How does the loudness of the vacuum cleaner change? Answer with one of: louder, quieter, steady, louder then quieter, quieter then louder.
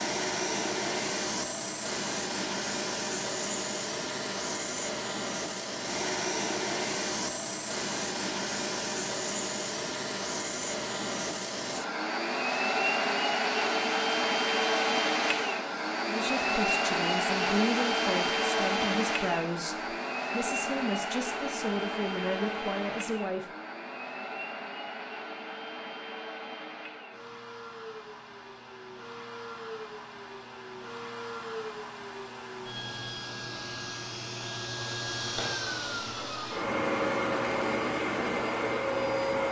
quieter then louder.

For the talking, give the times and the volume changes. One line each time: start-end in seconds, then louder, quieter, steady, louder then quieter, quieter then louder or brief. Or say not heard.
16.1-23.4 steady.